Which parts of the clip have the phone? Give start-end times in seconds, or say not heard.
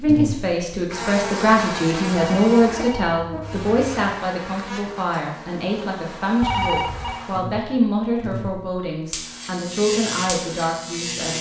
2.1-4.2, 6.4-7.2.